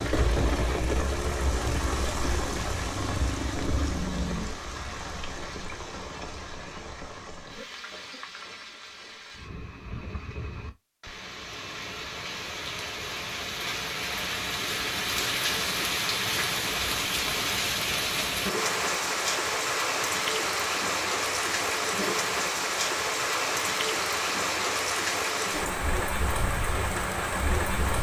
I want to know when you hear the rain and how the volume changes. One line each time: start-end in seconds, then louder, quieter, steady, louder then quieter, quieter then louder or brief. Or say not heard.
0.0-27.9 quieter then louder.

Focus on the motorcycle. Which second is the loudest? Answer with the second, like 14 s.
4 s.